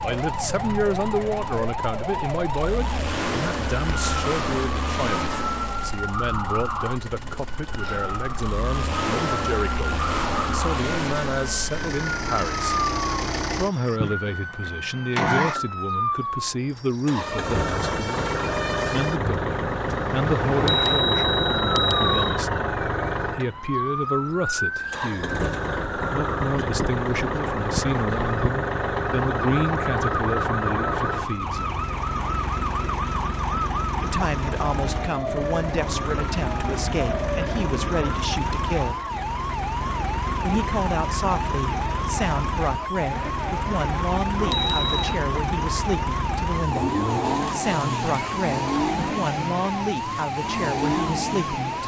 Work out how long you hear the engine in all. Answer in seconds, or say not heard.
52 s.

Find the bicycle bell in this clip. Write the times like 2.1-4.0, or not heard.
20.6-22.4, 44.4-45.1.